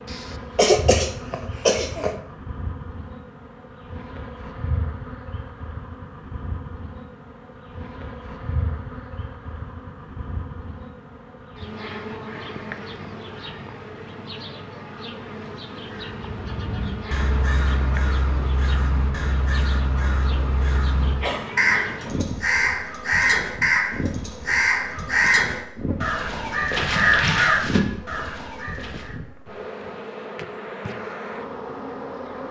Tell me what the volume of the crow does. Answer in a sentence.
The loudness of the crow goes up.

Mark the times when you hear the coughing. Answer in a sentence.
The coughing can be heard from 0.1 to 2.1 s and from 21.2 to 22.1 s.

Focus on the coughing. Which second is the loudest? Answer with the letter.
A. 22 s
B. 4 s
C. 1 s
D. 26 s
C.